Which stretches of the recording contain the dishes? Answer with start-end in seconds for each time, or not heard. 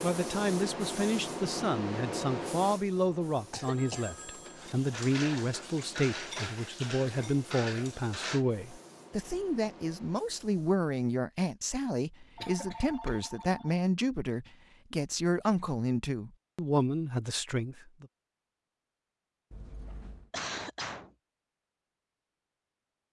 4.5-8.4.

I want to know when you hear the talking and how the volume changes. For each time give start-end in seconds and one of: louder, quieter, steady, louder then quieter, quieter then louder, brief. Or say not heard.
0.0-18.1 steady.